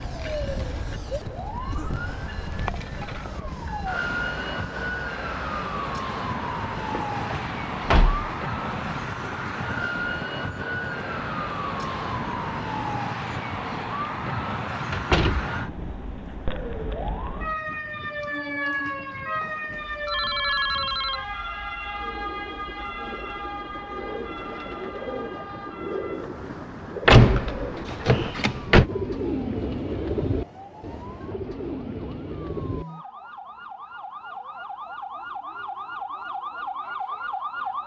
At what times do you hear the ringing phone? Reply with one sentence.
You can hear the ringing phone from 19.4 to 21.2 s.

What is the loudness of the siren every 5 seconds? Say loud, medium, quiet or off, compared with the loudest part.
loud, loud, loud, loud, loud, quiet, medium, loud.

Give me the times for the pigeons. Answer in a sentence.
You can hear the pigeons from 21.9 to 32.9 s.